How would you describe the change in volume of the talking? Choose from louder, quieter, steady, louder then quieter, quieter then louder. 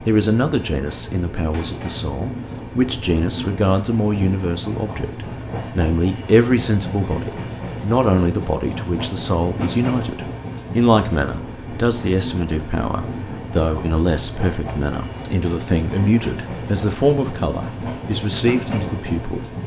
steady.